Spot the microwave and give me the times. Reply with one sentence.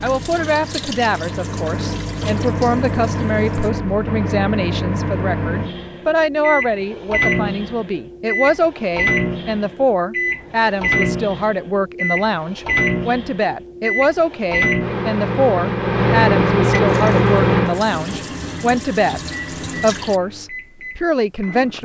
You can hear the microwave from 0.0 to 21.8 s.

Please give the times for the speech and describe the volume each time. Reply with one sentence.
The speech can be heard from 0.0 to 19.2 s, at a steady volume; and briefly from 19.8 to 21.8 s.